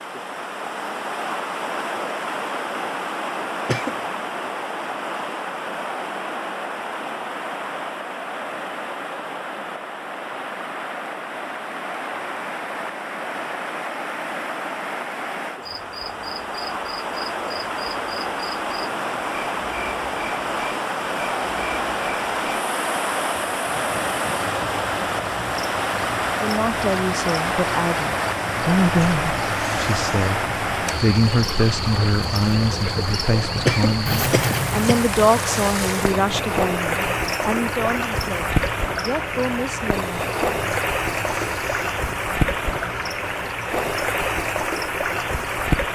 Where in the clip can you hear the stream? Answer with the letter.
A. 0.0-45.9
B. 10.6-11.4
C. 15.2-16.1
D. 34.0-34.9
A.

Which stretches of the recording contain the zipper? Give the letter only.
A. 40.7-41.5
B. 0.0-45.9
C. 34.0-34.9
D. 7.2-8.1
C.